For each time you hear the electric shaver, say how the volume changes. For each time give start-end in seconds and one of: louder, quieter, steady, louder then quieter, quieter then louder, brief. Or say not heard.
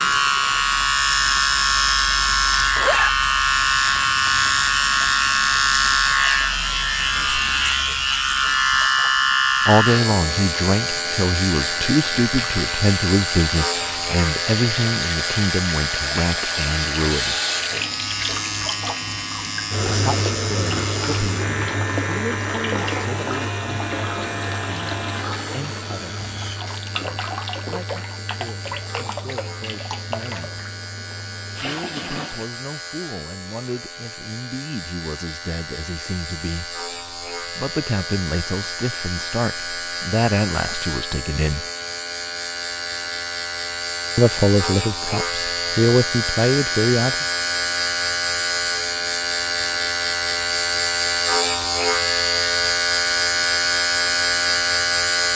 0.0-55.3 quieter then louder.